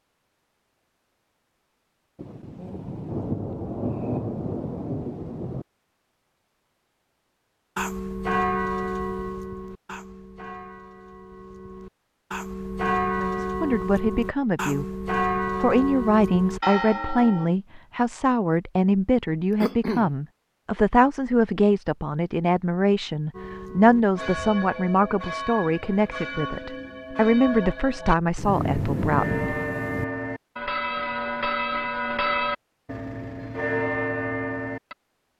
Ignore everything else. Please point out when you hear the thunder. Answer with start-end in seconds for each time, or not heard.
2.1-5.7, 28.4-30.1.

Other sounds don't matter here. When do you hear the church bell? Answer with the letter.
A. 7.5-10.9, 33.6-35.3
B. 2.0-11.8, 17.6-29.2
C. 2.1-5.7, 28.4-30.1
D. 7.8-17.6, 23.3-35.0
D.